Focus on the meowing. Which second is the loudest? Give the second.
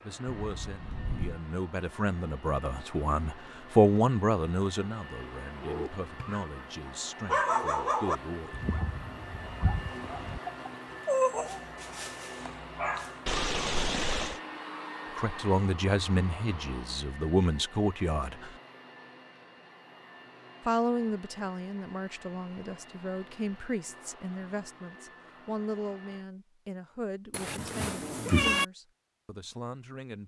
28 s.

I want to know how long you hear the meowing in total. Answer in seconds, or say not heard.
4 s.